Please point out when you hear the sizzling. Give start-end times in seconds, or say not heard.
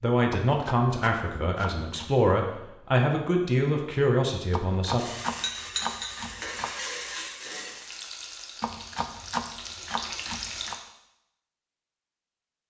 5.0-10.8.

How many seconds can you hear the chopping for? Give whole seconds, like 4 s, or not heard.
6 s.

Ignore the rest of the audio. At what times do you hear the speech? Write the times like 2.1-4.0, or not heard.
0.0-5.0.